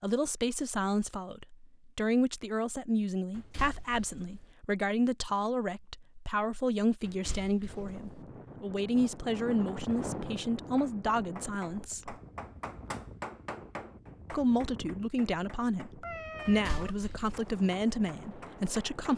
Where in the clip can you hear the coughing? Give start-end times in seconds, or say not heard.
not heard.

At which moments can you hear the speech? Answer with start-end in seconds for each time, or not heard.
0.0-12.2, 14.3-19.1.